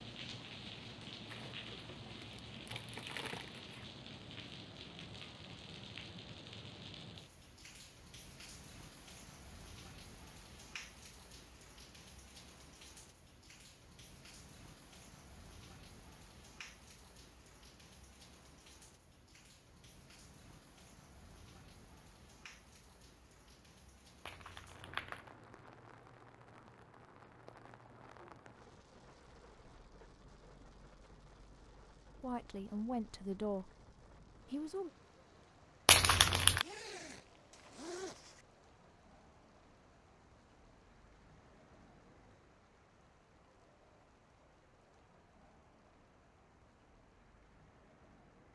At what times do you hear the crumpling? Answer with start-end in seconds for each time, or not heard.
1.2-3.9, 24.2-25.3, 35.9-36.6.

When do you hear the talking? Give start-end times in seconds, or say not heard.
32.2-33.7, 34.5-34.9.